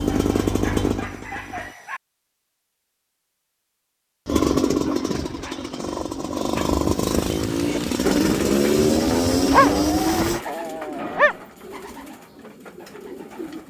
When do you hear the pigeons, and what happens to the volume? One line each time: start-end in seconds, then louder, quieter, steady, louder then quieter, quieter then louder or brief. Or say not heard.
7.5-13.6 quieter.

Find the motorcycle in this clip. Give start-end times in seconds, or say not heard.
0.0-1.8, 4.2-10.4.